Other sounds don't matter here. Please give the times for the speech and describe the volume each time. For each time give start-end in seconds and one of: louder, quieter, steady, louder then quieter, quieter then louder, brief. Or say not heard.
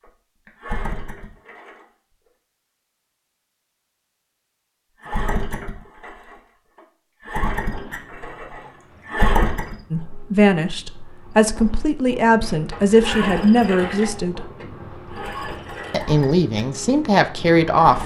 9.9-14.4 steady
15.9-18.0 brief.